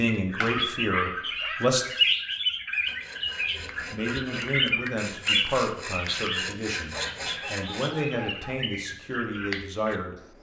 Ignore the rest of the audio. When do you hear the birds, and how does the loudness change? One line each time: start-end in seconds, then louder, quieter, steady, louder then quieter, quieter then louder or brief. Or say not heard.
0.0-10.0 quieter.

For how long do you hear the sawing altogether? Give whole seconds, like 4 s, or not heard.
5 s.